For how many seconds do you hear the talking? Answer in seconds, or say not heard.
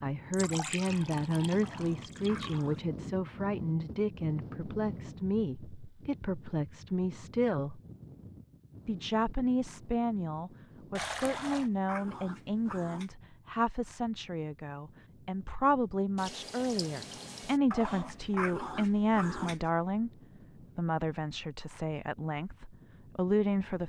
22 s.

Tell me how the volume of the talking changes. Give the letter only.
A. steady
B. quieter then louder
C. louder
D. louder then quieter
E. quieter
A.